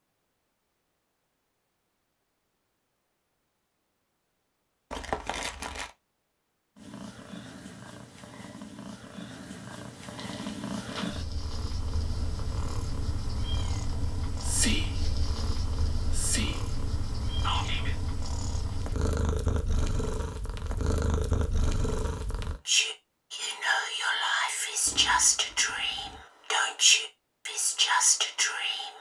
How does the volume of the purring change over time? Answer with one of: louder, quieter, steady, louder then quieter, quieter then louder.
louder.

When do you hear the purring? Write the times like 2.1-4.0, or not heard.
6.8-22.6.